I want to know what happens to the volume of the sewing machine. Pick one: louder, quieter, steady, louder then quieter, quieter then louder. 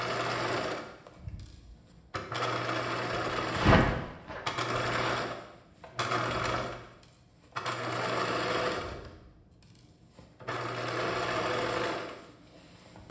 steady.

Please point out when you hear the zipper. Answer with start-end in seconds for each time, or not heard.
3.5-5.1.